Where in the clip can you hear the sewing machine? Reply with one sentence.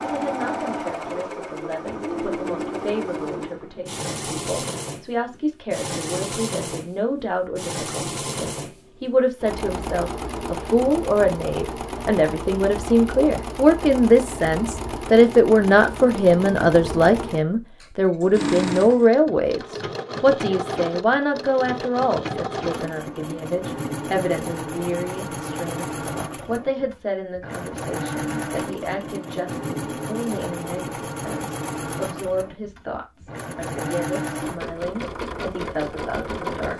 You can hear the sewing machine from 0.0 to 36.7 s.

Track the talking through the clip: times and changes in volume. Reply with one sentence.
You can hear the talking from 0.0 to 36.7 s, getting louder then quieter.